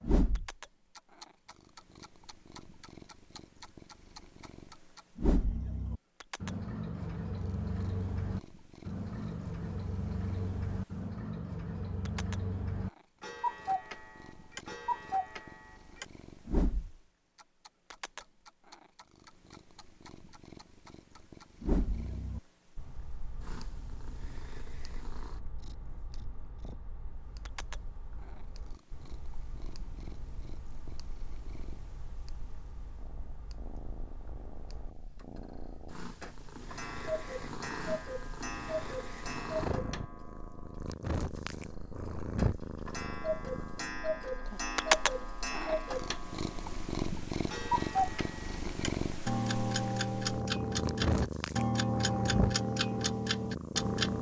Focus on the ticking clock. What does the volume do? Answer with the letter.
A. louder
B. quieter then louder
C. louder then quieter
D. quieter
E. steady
B.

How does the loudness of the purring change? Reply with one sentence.
The volume of the purring goes up.